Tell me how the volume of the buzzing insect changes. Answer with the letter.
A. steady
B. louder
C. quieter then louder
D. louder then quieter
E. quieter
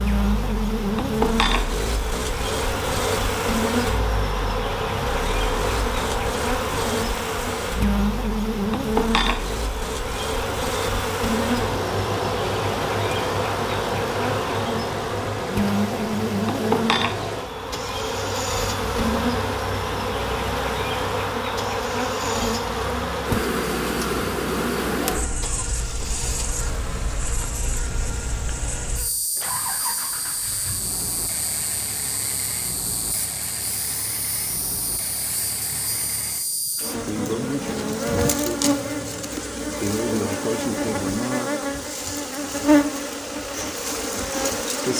C.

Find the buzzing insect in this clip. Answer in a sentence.
You can hear the buzzing insect from 0.0 to 44.9 s.